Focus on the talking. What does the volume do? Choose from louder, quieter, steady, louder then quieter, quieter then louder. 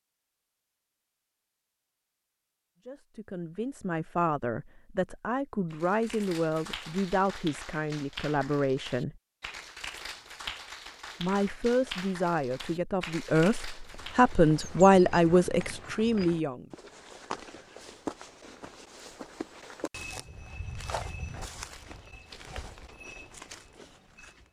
louder.